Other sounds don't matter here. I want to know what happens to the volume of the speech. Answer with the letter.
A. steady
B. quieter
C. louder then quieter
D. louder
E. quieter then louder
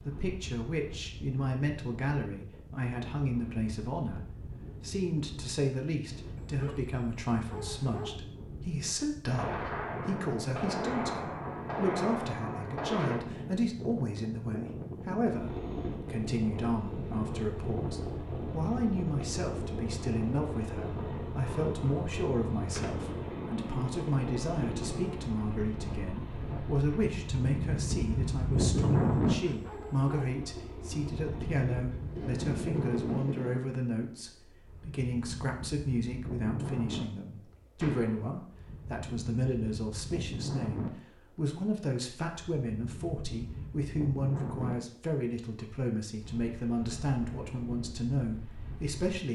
A.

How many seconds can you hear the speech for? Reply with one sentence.
You can hear the speech for 49 seconds altogether.